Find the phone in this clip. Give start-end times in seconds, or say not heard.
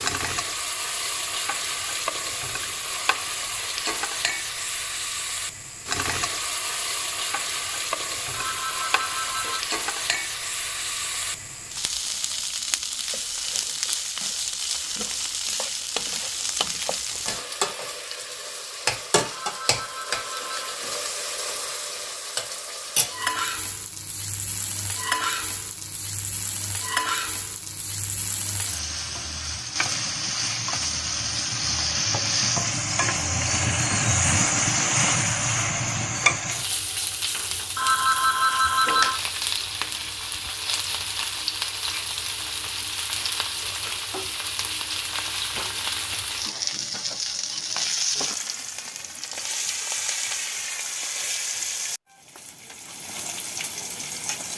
8.3-9.7, 19.3-20.8, 37.8-39.2.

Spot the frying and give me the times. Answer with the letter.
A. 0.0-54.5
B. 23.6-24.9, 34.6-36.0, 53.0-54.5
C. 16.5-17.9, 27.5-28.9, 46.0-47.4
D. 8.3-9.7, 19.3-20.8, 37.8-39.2
A.